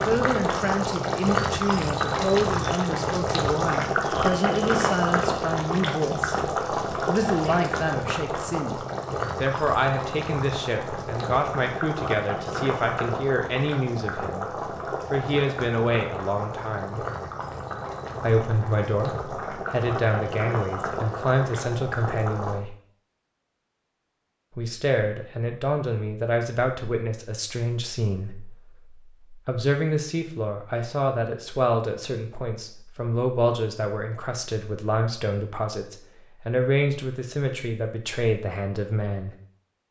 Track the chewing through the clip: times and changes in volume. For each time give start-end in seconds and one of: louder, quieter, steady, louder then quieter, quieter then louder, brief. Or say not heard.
not heard.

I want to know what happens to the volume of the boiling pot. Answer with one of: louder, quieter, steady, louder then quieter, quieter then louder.
quieter.